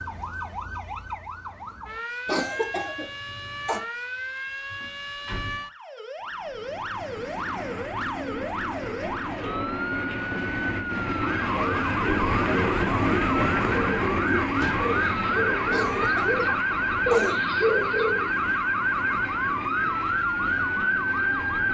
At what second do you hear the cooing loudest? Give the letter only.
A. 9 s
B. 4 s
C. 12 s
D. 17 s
D.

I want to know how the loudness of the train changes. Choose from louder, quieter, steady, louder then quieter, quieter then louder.
louder then quieter.